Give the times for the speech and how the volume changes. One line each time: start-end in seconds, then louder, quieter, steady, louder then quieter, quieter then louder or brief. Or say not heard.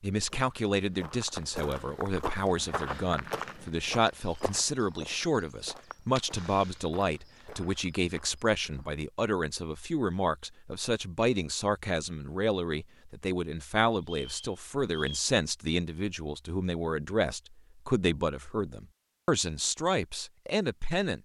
0.0-21.1 steady.